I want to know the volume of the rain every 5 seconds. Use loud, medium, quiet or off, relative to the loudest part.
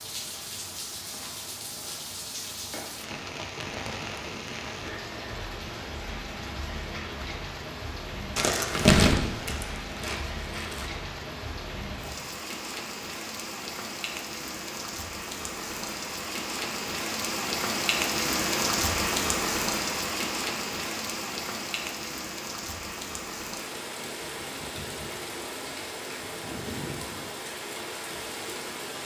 medium, medium, medium, loud, medium, medium.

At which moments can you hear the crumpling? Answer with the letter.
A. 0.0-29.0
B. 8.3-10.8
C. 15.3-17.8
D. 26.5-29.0
B.